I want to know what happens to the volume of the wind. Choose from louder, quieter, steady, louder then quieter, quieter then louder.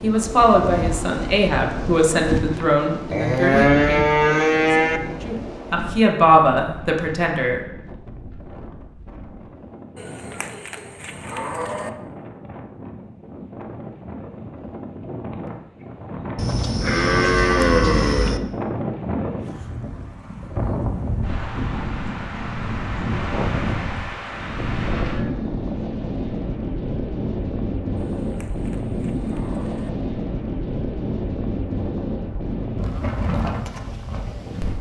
quieter then louder.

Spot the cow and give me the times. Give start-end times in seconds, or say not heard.
3.1-5.0, 9.9-11.9, 16.4-18.4, 23.1-25.4, 28.1-29.9.